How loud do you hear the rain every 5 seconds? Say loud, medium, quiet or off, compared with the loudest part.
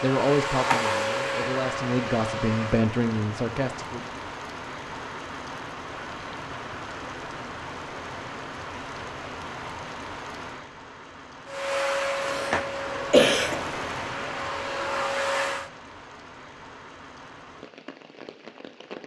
loud, loud, loud, medium.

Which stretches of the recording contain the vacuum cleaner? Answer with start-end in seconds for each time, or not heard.
0.0-2.9, 11.4-15.7.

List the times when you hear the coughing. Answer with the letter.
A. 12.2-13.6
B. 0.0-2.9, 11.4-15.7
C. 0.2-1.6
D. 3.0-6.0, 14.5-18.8
A.